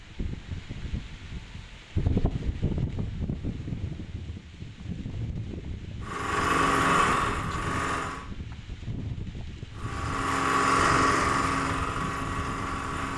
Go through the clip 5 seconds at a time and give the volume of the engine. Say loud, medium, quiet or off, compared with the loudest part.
off, loud, loud.